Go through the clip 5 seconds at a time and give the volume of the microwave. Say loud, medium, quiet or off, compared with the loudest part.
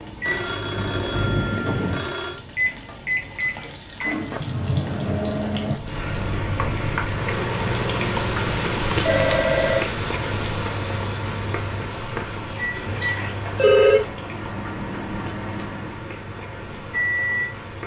loud, loud, medium, loud.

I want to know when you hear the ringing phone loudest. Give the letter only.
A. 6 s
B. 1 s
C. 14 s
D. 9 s
C.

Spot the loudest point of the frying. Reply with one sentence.
The loudest moment of the frying is at 9 seconds.